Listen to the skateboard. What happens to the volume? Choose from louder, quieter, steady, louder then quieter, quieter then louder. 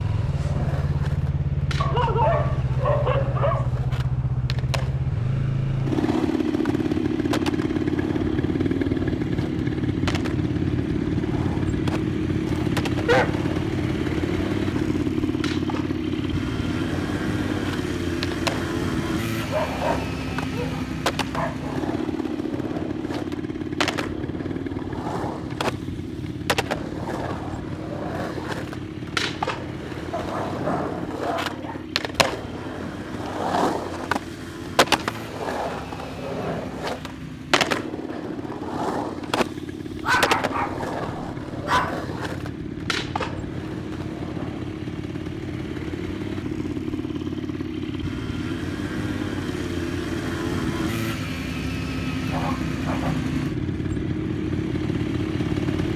louder.